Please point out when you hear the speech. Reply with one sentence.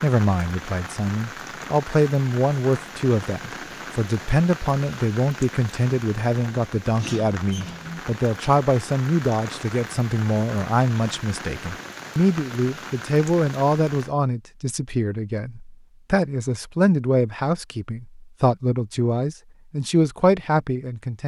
The speech can be heard from 0.0 to 21.2 s.